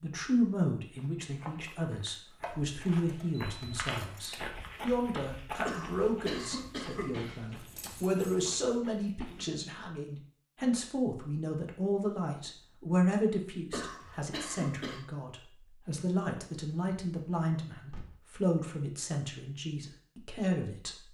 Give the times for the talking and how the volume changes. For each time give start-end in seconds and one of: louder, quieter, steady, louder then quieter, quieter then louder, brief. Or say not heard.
0.0-21.1 steady.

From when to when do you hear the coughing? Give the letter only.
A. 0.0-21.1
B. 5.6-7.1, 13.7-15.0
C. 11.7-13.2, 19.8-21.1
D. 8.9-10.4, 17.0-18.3
B.